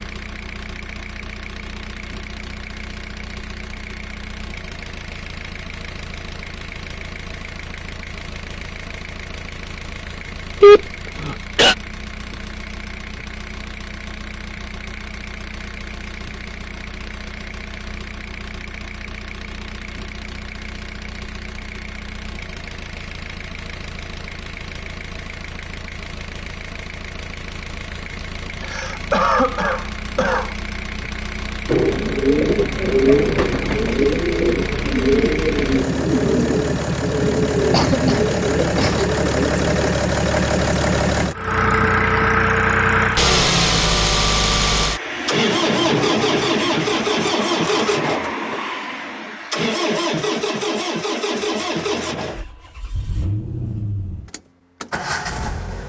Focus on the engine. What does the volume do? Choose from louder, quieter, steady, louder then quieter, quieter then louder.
louder.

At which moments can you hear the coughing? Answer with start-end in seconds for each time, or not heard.
10.6-11.8, 28.6-30.5, 37.7-39.0.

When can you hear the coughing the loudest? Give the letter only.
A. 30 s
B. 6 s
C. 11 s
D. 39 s
C.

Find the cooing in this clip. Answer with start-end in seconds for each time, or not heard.
31.6-39.9.